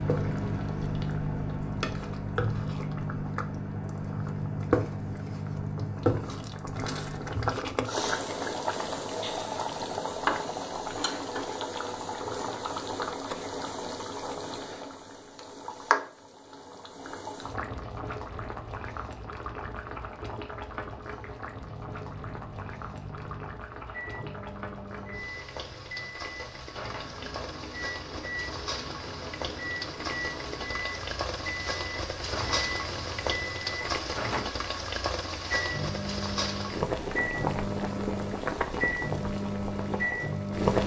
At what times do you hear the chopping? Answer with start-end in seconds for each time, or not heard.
not heard.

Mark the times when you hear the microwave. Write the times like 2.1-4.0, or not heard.
0.0-7.7, 21.5-40.8.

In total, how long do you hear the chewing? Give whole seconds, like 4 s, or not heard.
not heard.